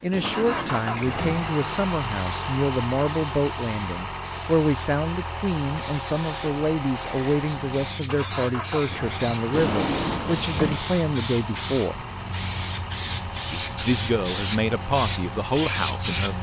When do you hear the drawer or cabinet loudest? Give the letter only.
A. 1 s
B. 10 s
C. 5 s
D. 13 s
B.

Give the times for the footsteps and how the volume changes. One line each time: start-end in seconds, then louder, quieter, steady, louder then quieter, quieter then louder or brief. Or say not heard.
not heard.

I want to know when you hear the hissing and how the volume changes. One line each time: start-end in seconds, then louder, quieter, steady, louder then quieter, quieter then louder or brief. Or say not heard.
0.0-16.3 louder.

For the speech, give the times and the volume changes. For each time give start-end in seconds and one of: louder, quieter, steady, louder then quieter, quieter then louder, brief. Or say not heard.
0.0-11.9 steady
13.5-16.3 brief.